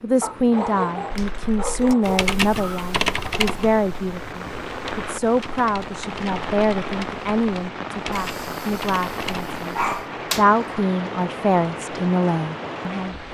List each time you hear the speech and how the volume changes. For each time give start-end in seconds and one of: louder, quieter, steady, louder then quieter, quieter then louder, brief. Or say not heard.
0.0-9.8 quieter
10.3-13.2 brief.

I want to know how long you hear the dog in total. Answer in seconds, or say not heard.
4 s.